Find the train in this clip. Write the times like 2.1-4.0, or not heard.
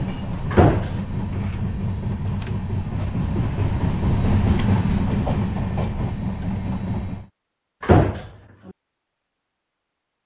0.0-7.3.